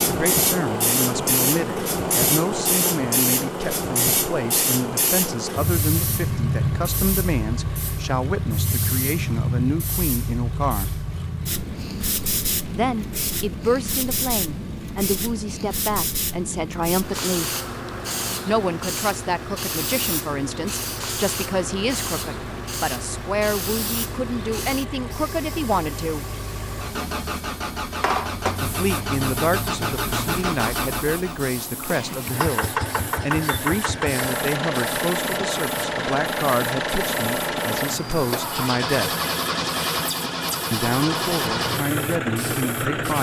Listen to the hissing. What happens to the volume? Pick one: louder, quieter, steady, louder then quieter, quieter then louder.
quieter.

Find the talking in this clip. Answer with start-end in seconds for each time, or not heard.
0.1-11.1, 12.7-17.5, 18.4-26.2, 28.6-39.1, 40.7-43.1.